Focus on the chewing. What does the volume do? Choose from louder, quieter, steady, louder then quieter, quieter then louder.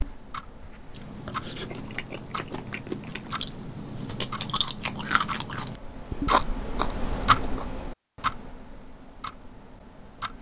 louder.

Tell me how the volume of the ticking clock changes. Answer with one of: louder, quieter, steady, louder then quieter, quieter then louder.
louder then quieter.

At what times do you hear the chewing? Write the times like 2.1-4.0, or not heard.
0.8-7.7.